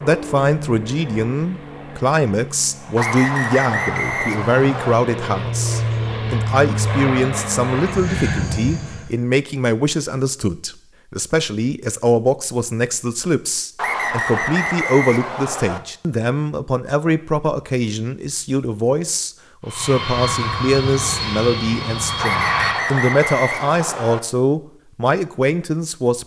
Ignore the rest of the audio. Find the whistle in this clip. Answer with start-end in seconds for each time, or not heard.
3.0-5.0, 13.8-15.8, 22.2-24.2.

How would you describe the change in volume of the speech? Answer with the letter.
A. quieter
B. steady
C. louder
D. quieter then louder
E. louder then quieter
B.